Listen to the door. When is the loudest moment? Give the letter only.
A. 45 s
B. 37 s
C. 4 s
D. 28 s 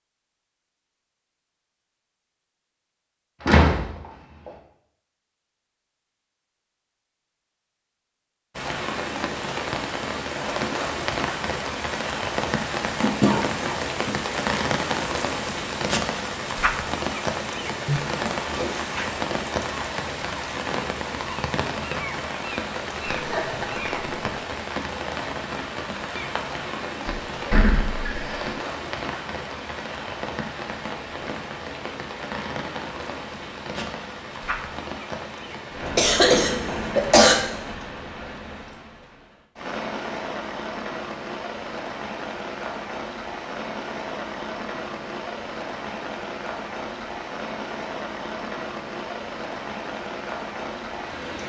C.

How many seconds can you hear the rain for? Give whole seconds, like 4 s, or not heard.
43 s.